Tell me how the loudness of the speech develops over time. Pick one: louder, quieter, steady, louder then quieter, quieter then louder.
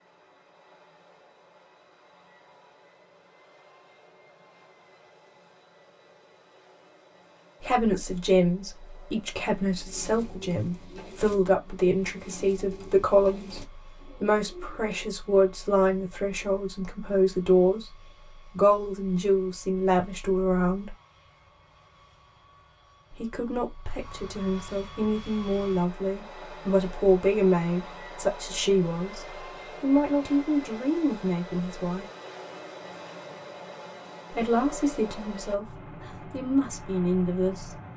steady.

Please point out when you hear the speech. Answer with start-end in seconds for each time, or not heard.
7.6-20.9, 23.1-32.0, 34.3-37.8.